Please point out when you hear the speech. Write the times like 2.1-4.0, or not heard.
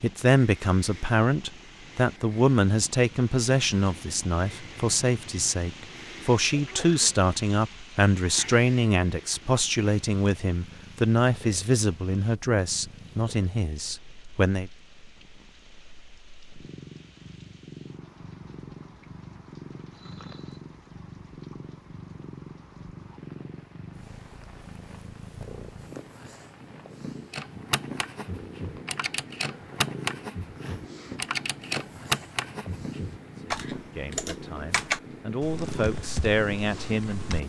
0.0-14.7, 33.4-37.4.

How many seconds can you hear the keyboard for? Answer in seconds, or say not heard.
10 s.